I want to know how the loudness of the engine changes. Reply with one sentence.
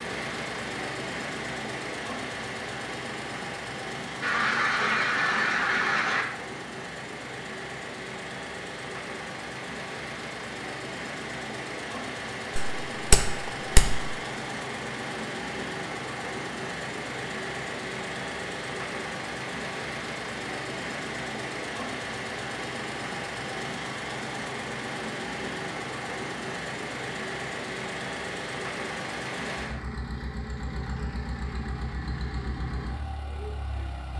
The volume of the engine stays about the same.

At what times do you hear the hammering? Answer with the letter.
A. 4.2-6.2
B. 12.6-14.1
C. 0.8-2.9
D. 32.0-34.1
B.